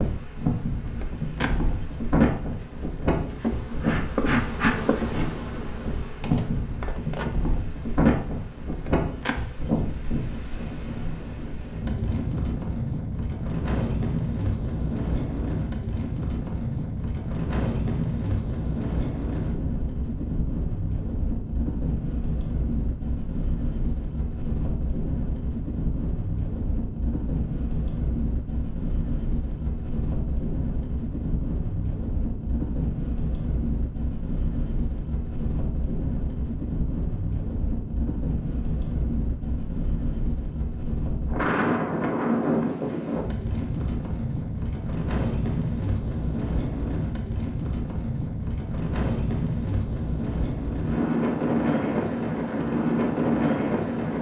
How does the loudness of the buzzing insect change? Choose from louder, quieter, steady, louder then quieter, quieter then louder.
louder then quieter.